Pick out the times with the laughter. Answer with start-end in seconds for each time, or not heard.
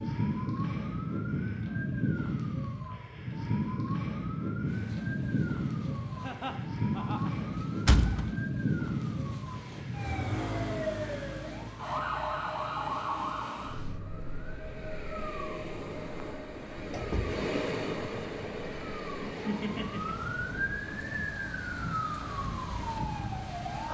6.2-7.3, 19.4-20.3.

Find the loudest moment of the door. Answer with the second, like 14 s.
8 s.